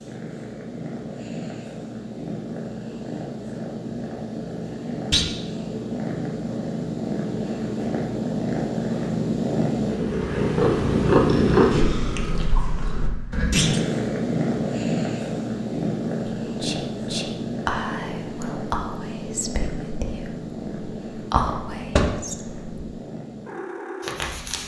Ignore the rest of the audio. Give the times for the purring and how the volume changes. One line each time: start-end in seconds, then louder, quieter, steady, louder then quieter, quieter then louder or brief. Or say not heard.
0.0-24.6 louder then quieter.